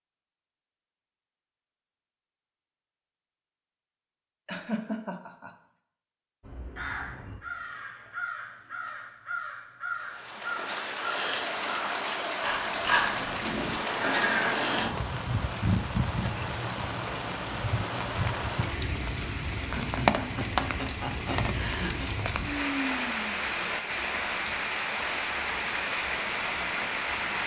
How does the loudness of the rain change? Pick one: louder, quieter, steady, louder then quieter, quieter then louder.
steady.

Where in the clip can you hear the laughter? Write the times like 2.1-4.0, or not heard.
4.5-5.5, 19.7-22.1.